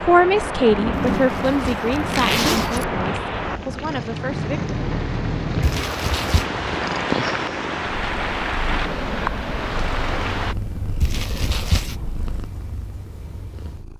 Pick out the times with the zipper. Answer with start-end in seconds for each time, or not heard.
0.9-2.9, 5.6-6.5, 11.0-11.9.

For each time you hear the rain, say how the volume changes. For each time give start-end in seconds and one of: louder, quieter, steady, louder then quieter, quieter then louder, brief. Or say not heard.
0.0-10.6 steady.